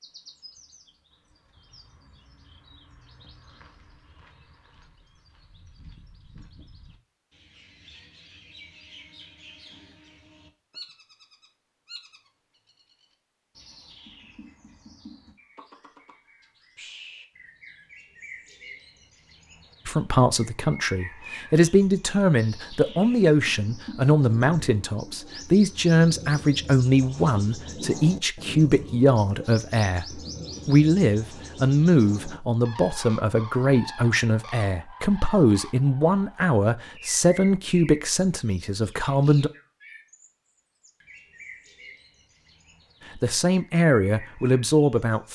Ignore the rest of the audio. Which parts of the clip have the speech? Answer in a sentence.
The speech can be heard from 19.9 to 39.5 s and from 43.1 to 45.2 s.